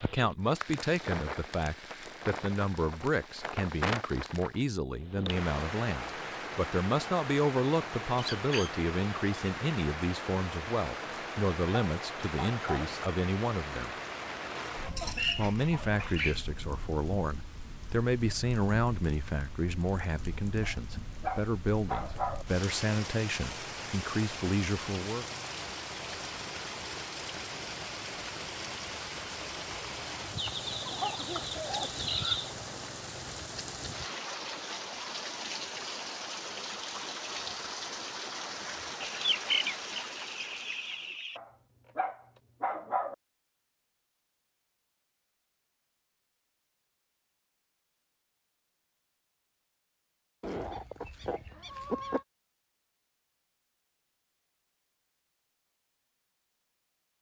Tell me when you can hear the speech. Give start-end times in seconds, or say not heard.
0.0-13.9, 15.3-25.2.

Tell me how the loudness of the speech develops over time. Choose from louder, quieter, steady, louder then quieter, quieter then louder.
steady.